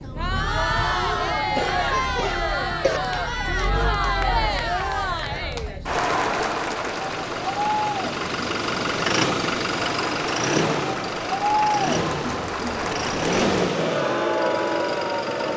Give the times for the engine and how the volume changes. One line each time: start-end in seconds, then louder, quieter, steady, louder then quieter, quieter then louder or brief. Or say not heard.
0.0-15.5 louder.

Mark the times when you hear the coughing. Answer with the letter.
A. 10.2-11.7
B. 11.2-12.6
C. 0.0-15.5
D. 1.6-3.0
D.